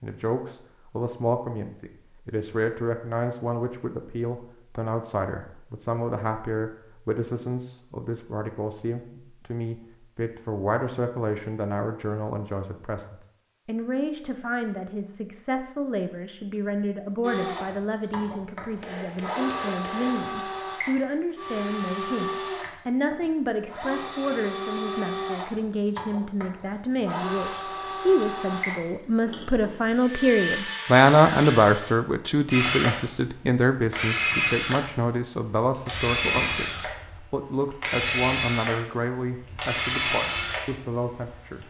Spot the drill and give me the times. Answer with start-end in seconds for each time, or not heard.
17.2-41.6.